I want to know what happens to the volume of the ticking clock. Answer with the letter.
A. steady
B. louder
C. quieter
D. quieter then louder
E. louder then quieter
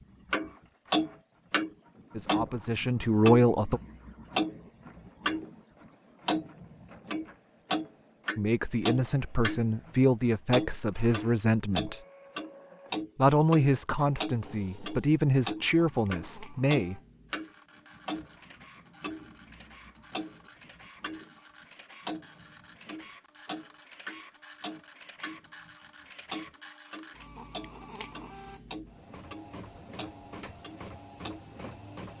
C.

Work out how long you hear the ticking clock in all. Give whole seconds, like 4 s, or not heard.
29 s.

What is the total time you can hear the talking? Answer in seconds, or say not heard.
9 s.